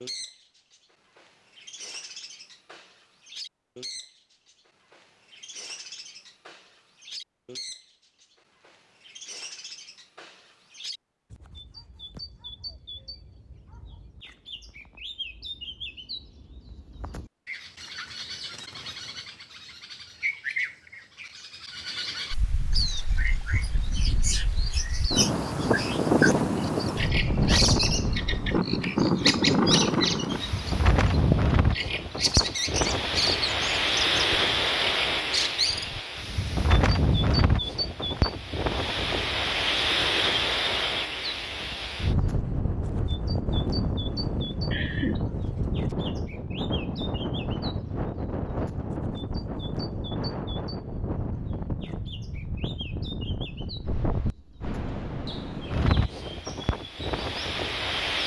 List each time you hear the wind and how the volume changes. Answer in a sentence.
The wind can be heard from 22.3 to 58.2 s, getting quieter.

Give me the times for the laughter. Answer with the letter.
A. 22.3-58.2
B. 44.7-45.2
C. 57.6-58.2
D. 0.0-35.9
B.